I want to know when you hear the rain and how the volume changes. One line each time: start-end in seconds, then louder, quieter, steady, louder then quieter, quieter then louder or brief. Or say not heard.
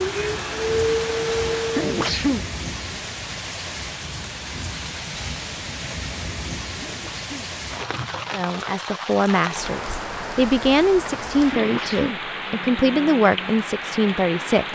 0.0-14.7 steady.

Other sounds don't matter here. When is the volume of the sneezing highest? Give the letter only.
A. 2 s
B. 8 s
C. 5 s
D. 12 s
A.